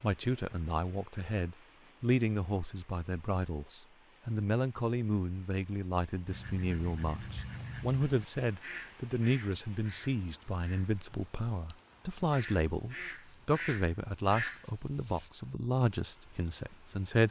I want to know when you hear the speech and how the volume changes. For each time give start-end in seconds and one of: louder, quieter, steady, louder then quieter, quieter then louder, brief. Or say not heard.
0.0-17.2 steady.